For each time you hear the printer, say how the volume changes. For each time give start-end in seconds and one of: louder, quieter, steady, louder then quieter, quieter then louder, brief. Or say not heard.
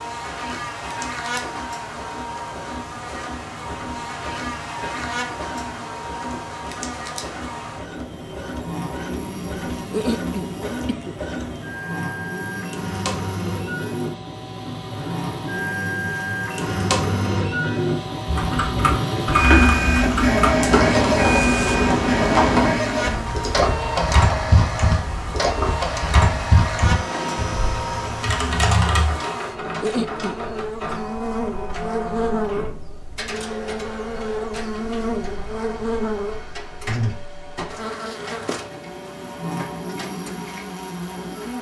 0.0-41.5 louder then quieter.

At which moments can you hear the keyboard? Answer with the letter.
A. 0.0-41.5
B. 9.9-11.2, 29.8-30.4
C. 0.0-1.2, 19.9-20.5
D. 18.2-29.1
D.